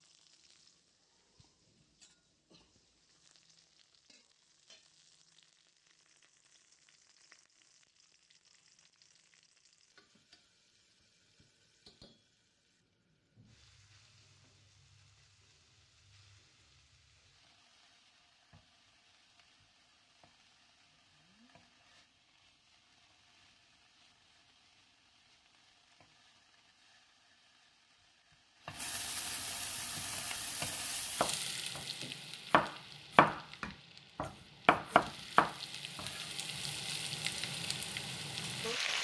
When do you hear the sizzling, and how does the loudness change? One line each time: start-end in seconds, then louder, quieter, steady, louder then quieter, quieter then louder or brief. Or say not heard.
0.0-38.9 louder.